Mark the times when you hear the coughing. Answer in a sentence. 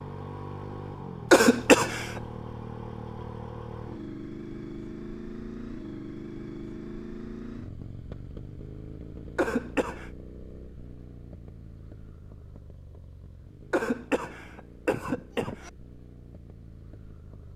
You can hear the coughing from 1.3 to 2.2 s, from 9.3 to 10.1 s and from 13.7 to 15.7 s.